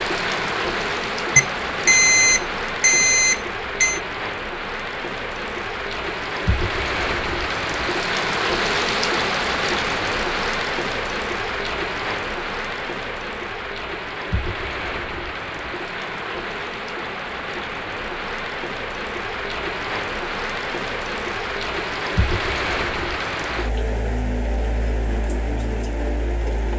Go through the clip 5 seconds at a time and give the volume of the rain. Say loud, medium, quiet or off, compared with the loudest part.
loud, loud, loud, medium, loud, medium.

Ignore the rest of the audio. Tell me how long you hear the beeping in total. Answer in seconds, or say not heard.
3 s.